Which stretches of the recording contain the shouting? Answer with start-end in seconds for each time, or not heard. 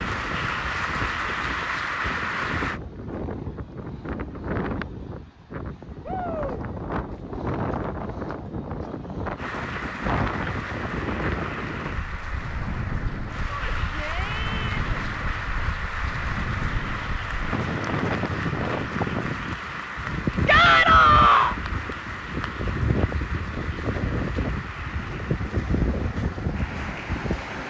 6.0-6.7, 13.4-14.9, 20.4-21.6.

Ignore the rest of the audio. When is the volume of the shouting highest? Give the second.
21 s.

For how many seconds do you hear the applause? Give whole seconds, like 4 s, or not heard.
21 s.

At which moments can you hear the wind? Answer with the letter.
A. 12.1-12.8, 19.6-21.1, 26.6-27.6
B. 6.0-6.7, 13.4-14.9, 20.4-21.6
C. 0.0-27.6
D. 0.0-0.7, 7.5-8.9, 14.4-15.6
C.